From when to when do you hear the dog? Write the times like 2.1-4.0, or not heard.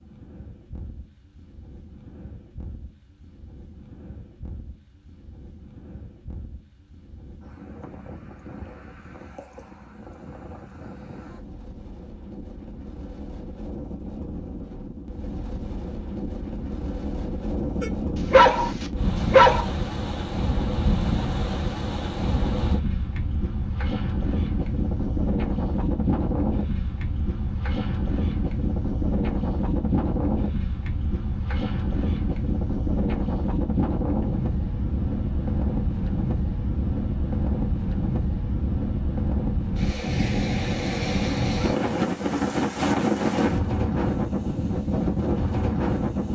17.8-19.6.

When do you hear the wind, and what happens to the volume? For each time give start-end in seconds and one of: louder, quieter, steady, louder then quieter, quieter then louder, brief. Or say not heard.
0.0-46.2 louder.